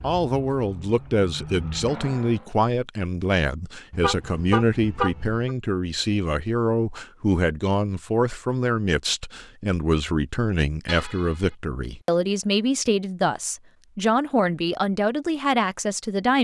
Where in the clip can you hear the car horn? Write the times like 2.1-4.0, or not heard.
3.9-5.5, 10.8-11.6.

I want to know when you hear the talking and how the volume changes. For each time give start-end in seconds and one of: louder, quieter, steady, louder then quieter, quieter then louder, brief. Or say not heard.
0.0-16.3 steady.